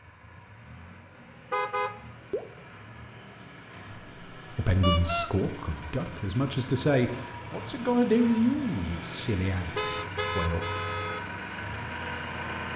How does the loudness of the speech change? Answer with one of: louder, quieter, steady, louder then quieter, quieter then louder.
louder then quieter.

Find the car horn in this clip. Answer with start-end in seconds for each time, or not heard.
1.5-2.5, 4.8-5.3, 9.7-11.2.